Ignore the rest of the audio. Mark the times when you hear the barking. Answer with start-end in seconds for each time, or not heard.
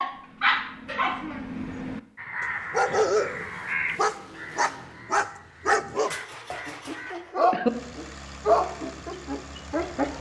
0.0-2.0, 2.7-10.1.